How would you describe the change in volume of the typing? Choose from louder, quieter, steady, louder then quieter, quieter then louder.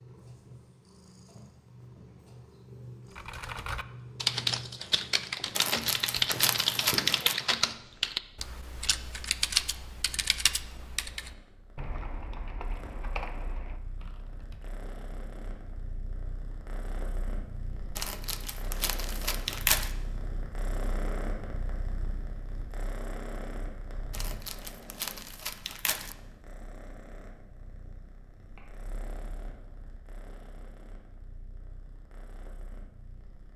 quieter.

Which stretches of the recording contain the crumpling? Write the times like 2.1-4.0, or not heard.
5.5-7.3, 17.9-19.9, 24.1-26.1.